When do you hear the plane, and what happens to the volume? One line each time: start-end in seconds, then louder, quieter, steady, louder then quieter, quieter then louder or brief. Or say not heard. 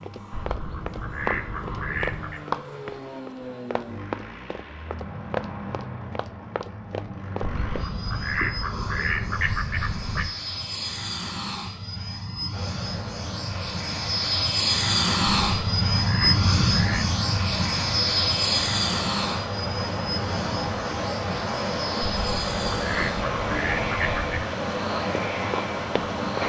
0.0-26.4 louder then quieter.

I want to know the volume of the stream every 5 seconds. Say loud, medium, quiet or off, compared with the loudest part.
off, off, medium, medium, loud, loud.